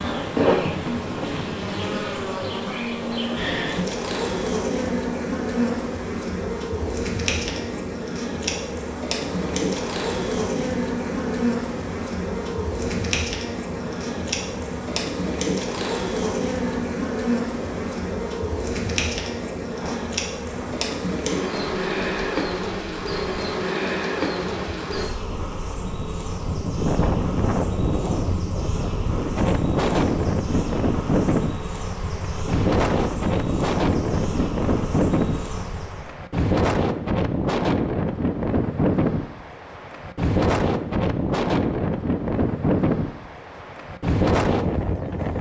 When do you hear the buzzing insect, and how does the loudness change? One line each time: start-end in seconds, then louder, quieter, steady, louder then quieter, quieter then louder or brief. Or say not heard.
0.0-36.1 quieter.